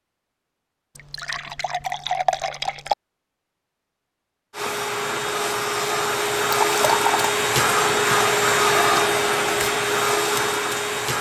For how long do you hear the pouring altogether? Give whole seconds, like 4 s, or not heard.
3 s.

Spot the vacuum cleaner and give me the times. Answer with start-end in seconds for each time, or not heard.
4.5-11.1.